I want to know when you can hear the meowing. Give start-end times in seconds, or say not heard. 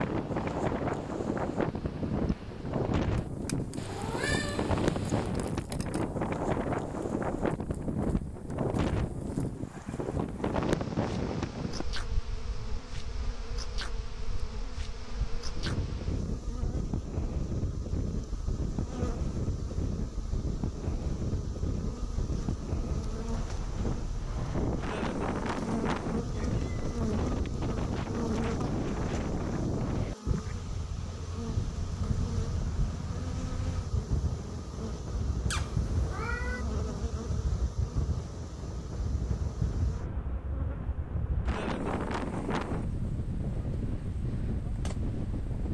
3.8-5.3, 26.3-27.6, 35.5-36.6.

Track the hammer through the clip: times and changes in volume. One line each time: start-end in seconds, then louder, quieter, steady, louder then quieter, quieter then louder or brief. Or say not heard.
not heard.